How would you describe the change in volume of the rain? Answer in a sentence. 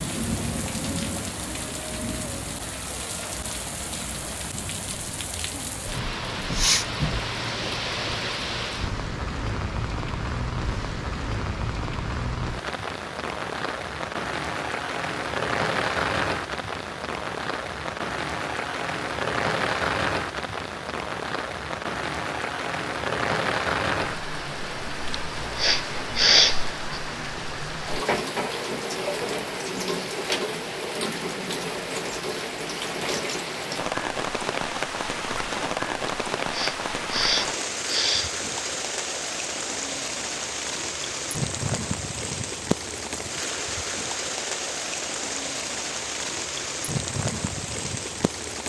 The volume of the rain stays about the same.